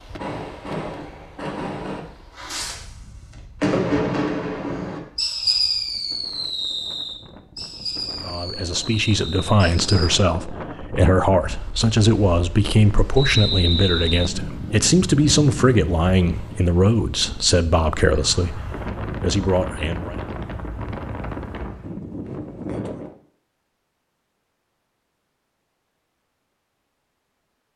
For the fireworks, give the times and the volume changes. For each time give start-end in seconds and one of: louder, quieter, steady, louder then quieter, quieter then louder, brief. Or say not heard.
0.1-10.1 louder then quieter.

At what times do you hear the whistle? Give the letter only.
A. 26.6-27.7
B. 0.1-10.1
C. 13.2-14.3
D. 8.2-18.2
C.